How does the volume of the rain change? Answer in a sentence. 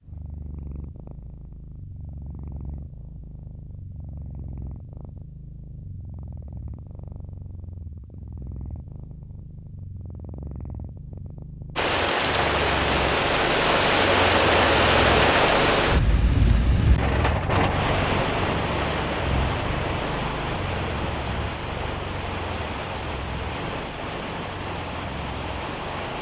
The loudness of the rain goes down.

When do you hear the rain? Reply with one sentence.
The rain can be heard from 11.8 to 26.1 s.